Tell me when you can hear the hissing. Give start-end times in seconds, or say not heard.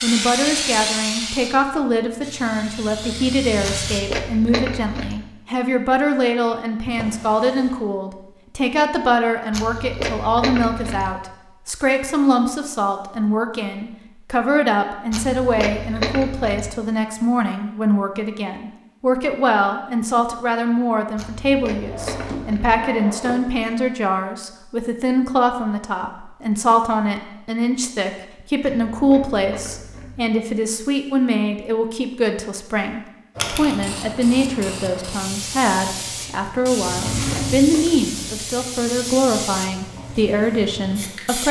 0.0-4.0, 33.4-41.4.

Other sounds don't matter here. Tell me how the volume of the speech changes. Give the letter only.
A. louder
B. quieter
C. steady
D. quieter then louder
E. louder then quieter
C.